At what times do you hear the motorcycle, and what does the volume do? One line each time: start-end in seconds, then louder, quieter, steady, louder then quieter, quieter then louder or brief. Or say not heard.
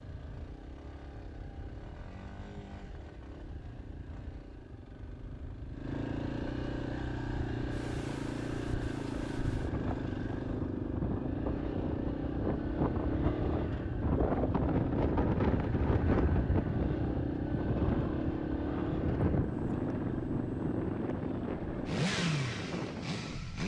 0.0-23.6 louder.